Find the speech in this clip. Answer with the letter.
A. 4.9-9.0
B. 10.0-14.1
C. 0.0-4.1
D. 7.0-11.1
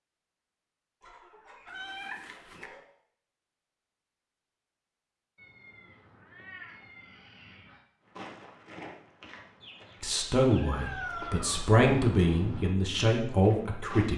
B.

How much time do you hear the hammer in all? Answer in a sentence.
The hammer can't be heard in this clip.